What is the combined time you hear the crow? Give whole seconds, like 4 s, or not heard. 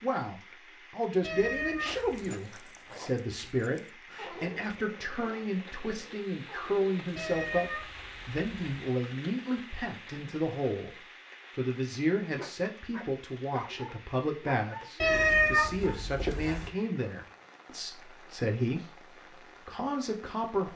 not heard.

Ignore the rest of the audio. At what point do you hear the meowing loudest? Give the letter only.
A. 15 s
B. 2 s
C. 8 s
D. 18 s
A.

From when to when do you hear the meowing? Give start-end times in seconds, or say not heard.
1.2-2.1, 7.2-8.7, 15.0-16.7.